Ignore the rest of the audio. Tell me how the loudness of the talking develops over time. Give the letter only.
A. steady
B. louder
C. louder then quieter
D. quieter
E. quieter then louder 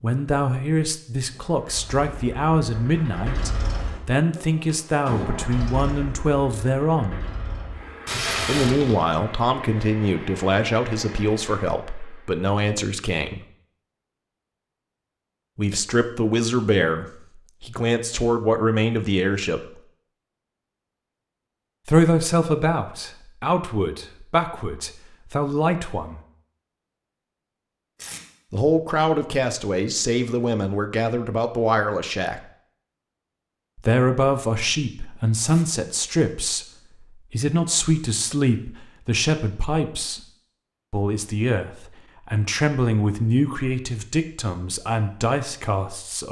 A.